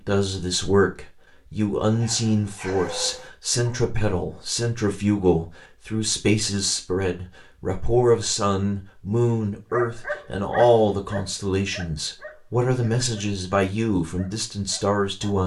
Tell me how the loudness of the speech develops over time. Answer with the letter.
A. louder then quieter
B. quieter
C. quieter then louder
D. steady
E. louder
D.